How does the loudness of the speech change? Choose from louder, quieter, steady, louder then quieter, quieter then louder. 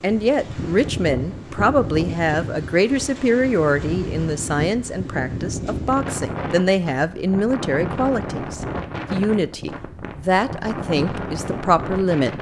steady.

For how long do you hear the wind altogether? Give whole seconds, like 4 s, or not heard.
12 s.